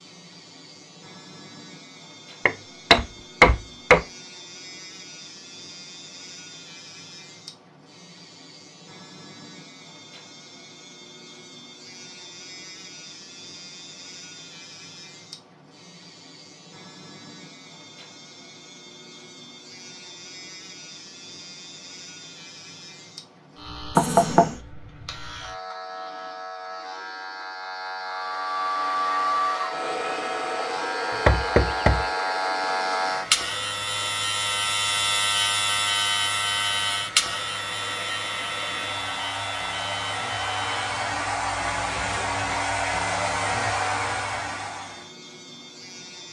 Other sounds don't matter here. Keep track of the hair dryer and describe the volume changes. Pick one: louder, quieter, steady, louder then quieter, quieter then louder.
quieter then louder.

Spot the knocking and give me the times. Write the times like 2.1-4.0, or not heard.
2.5-4.0, 23.9-24.6, 31.2-32.0.